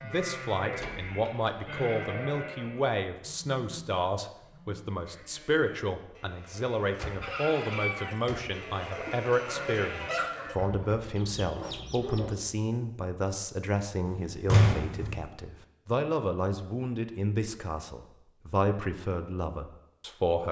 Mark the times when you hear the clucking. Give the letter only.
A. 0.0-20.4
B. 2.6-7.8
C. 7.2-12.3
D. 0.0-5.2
C.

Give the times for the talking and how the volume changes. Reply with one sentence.
You can hear the talking from 0.0 to 20.4 s, at a steady volume.